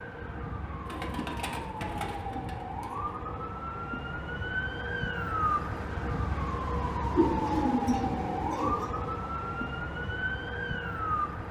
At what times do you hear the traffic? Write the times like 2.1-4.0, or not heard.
not heard.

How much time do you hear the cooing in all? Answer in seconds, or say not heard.
4 s.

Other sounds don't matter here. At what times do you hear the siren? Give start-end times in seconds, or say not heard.
0.0-11.4.